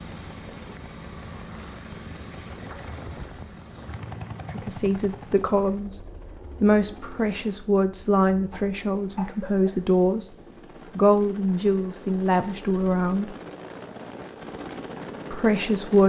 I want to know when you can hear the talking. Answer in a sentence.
You can hear the talking from 4.5 to 10.3 s, from 10.9 to 13.3 s and from 15.3 to 16.0 s.